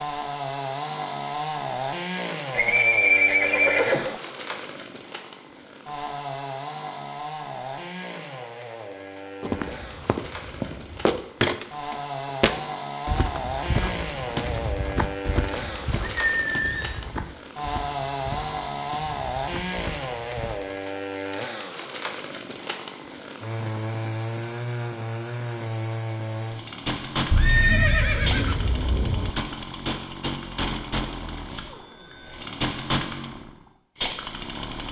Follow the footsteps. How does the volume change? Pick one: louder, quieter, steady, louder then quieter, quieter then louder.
quieter.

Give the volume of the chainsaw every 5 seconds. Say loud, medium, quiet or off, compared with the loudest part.
loud, medium, loud, loud, loud, loud, loud.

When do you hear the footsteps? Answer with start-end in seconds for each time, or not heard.
9.4-20.6.